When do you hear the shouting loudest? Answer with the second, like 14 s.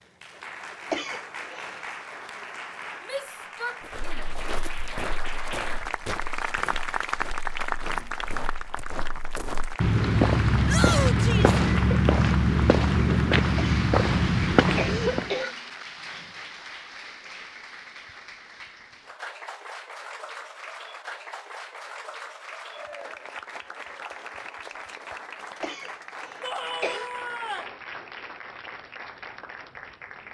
11 s.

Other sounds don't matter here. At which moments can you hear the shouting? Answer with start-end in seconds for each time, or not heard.
3.0-4.3, 10.7-11.6, 26.4-27.7.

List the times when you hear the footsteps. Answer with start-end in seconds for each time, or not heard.
3.9-15.3.